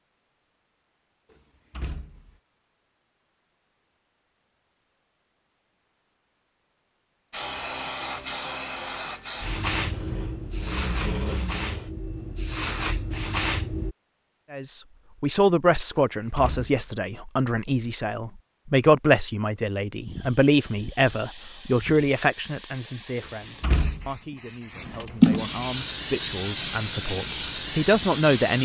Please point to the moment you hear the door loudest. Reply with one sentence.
The volume of the door peaks at 24 seconds.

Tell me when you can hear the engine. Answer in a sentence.
The engine can be heard from 9.7 to 11.9 s.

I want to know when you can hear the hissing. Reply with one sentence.
You can hear the hissing from 7.3 to 13.9 s and from 20.1 to 28.6 s.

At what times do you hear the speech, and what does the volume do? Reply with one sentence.
You can hear the speech from 14.5 to 28.6 s, getting quieter then louder.